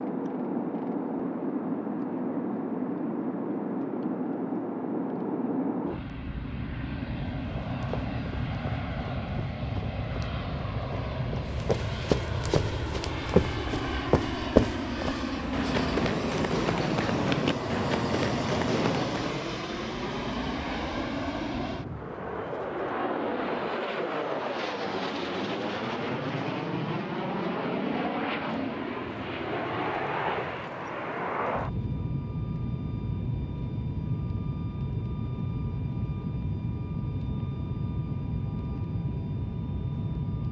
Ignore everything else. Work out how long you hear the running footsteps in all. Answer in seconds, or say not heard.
12 s.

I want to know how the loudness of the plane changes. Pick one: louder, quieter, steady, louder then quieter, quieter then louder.
steady.